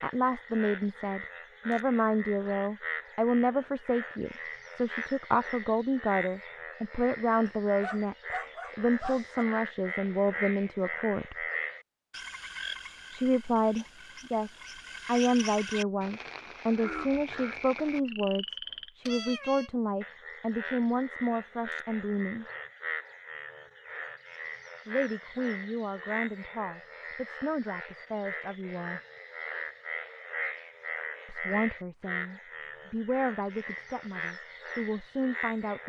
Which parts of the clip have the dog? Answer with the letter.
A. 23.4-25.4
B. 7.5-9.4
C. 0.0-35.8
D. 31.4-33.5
B.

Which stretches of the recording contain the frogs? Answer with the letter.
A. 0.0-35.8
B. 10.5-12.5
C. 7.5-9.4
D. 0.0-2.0
A.